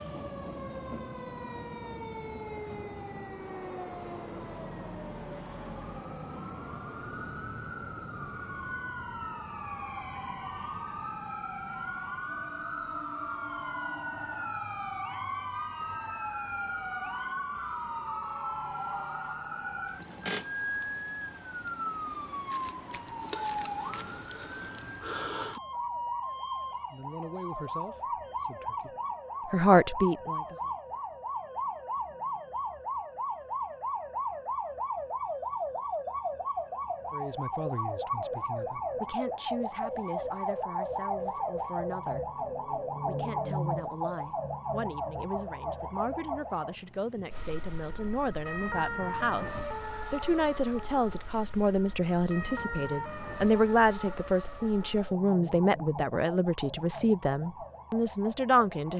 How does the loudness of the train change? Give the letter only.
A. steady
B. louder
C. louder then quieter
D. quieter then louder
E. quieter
E.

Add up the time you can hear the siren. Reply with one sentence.
You can hear the siren for 59 seconds altogether.